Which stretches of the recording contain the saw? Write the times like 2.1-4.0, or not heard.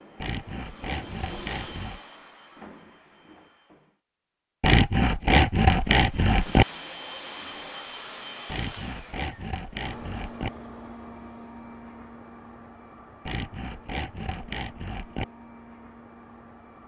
0.1-2.0, 4.6-6.7, 8.4-10.5, 13.2-15.2.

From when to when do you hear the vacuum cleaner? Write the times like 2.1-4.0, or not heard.
0.0-4.0, 6.0-16.8.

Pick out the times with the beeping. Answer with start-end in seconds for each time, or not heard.
not heard.